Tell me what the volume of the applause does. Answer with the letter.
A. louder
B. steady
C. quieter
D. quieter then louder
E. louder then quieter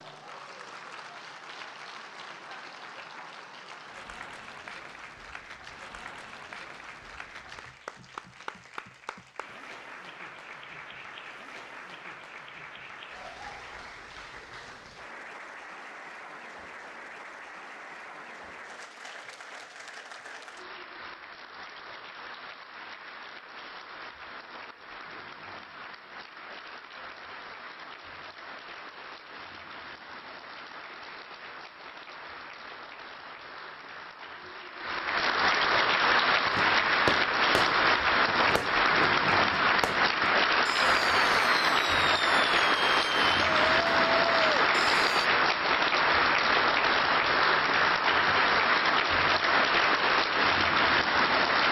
A.